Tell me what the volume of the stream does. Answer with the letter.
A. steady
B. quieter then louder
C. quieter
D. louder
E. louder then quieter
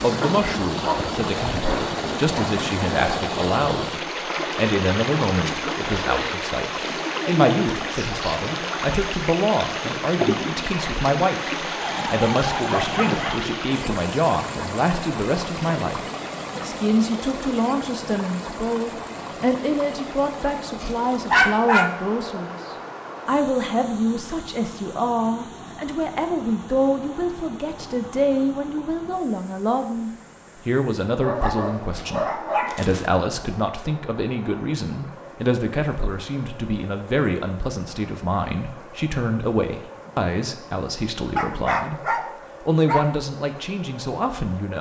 C.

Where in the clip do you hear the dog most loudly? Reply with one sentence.
The loudest moment of the dog is at 21 seconds.